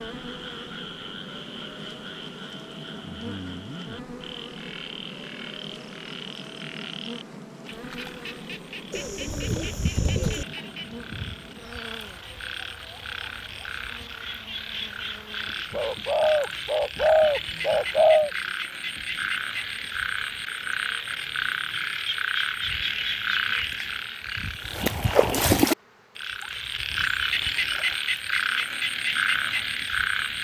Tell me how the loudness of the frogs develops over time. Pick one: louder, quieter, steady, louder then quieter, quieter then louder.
louder.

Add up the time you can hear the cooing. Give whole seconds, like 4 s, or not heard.
4 s.